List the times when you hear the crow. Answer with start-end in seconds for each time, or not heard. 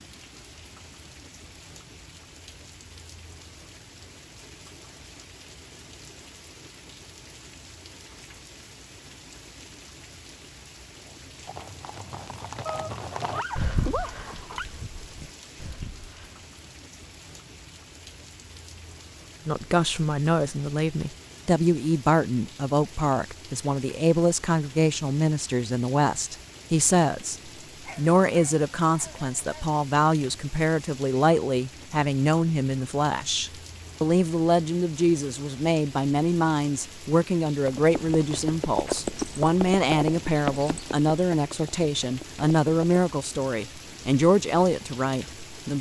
not heard.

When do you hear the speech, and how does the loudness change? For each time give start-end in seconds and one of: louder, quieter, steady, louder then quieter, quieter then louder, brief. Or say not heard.
19.4-45.7 steady.